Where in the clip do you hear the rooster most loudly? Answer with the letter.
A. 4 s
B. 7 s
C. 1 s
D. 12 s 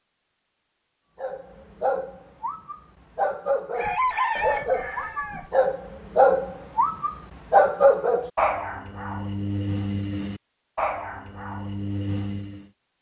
A.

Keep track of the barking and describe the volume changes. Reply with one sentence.
The loudness of the barking goes up, then down.